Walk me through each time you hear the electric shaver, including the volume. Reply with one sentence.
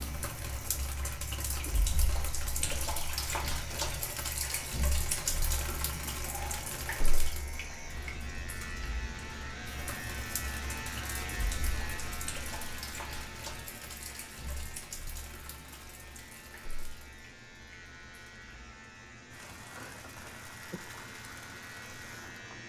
The electric shaver can be heard from 0.0 to 22.6 s, getting louder then quieter.